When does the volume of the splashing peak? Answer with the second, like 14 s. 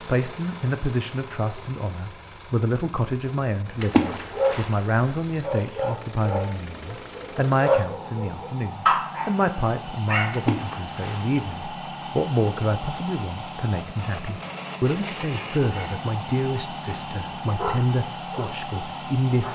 4 s.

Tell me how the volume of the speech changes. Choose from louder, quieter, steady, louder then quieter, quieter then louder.
steady.